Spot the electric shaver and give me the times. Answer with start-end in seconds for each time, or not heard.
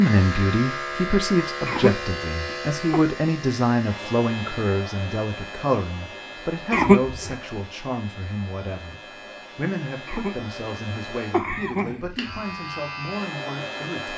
0.0-14.1.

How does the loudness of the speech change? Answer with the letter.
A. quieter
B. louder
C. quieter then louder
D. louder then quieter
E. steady
A.